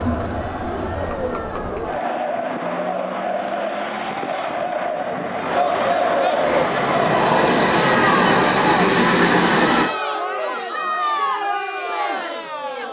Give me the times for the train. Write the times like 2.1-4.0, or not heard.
6.4-9.9.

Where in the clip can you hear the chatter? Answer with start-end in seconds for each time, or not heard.
0.0-12.8.